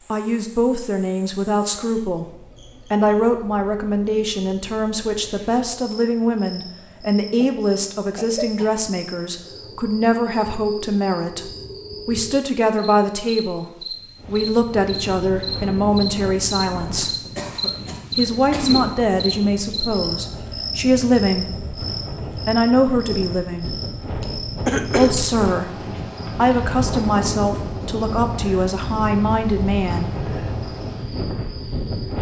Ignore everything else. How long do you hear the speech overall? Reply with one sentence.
The speech can be heard for 27 seconds in total.